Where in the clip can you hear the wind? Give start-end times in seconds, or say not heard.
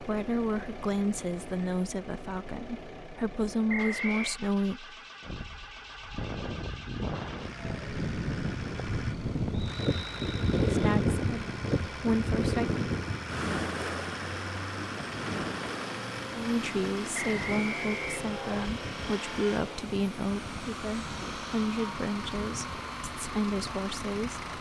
5.2-24.5.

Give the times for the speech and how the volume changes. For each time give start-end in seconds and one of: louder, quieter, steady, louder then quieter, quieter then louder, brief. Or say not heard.
0.0-5.0 quieter then louder
10.7-12.8 brief
16.3-24.4 steady.